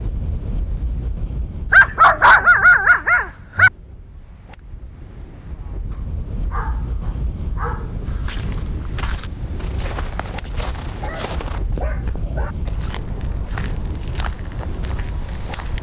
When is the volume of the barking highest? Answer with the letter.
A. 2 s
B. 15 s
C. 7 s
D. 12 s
A.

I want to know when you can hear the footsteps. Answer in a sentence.
You can hear the footsteps from 8.1 to 15.7 s.